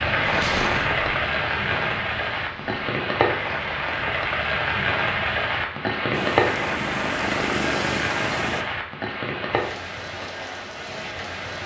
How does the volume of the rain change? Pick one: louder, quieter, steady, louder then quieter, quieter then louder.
quieter.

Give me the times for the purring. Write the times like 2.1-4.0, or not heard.
0.1-2.9, 6.1-8.7.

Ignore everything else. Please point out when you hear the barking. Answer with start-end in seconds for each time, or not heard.
not heard.